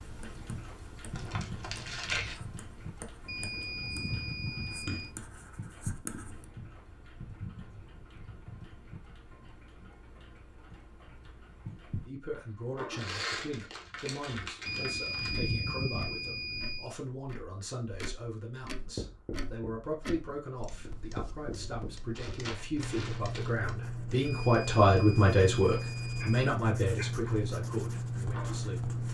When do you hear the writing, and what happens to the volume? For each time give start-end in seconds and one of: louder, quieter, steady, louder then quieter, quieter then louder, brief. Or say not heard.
0.0-6.5 louder
18.8-29.0 louder.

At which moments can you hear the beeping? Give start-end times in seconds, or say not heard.
3.2-5.2, 14.7-16.9, 24.2-26.3.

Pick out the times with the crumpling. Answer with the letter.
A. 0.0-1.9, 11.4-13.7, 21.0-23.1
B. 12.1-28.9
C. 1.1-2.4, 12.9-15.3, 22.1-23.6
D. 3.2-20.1
C.